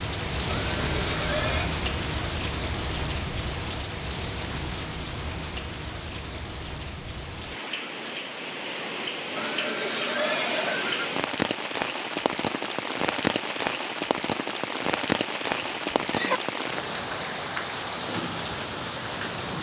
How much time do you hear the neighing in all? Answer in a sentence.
You can hear the neighing for 4 seconds altogether.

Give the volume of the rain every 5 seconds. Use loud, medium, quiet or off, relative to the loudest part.
loud, medium, loud, loud.